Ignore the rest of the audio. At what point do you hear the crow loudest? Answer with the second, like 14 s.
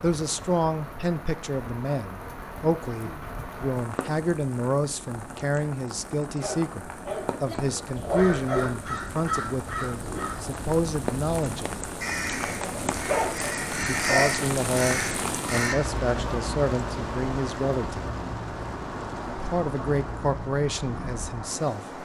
14 s.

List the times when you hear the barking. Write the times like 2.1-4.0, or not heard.
6.3-8.7, 12.6-14.3.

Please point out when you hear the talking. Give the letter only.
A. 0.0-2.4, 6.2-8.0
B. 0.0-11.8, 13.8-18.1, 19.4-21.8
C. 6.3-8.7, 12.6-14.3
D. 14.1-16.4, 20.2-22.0
B.